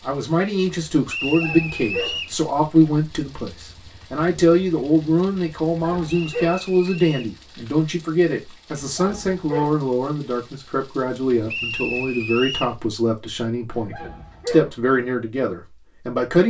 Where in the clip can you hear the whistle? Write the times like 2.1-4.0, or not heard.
1.1-2.4, 6.1-7.3, 11.4-12.8.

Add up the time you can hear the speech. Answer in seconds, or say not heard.
16 s.